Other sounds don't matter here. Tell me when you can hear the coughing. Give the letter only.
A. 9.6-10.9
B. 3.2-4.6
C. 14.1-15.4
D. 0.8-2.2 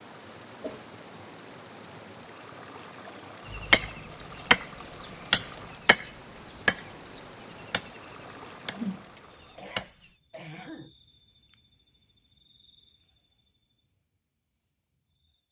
A.